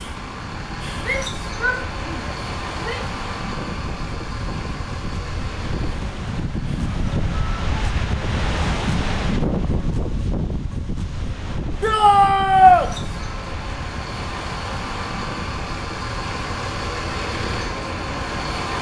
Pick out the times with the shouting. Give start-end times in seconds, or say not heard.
1.0-3.0, 11.8-12.9.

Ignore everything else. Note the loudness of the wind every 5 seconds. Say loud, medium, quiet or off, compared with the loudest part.
medium, loud, medium, medium.